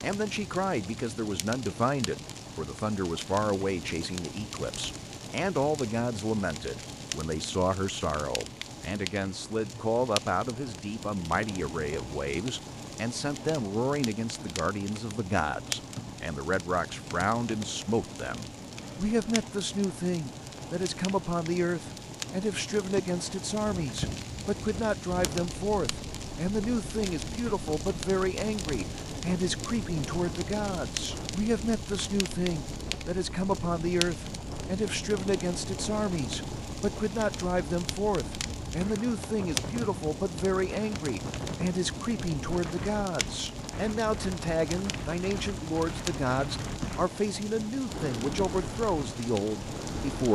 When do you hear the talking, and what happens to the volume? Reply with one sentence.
You can hear the talking from 0.0 to 50.3 s, at a steady volume.